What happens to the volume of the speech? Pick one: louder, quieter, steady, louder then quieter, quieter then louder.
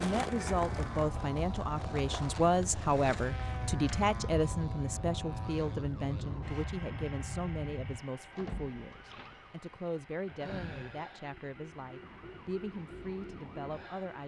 quieter.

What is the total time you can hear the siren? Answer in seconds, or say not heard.
14 s.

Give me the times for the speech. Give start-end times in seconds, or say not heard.
0.0-14.2.